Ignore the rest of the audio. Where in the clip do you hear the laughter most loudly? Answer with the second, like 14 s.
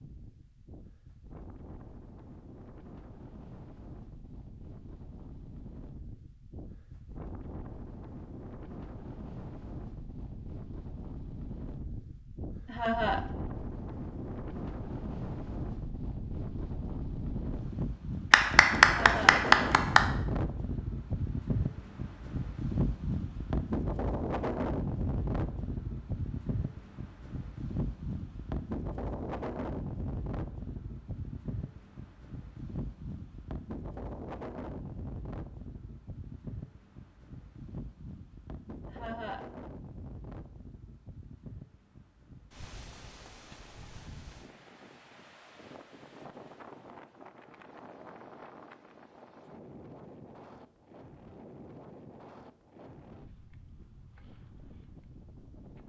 13 s.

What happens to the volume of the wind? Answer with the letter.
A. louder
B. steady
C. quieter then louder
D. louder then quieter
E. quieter
D.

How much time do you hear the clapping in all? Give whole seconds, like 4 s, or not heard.
2 s.